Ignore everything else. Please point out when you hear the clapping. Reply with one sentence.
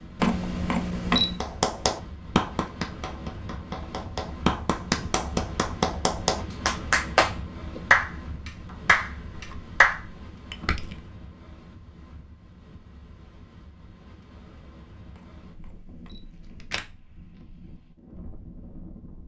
You can hear the clapping from 1.4 to 10.0 s.